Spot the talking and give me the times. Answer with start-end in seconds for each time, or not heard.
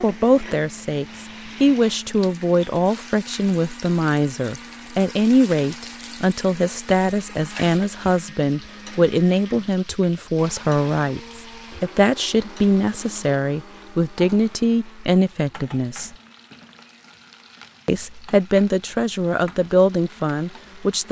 0.0-16.1, 17.9-21.0.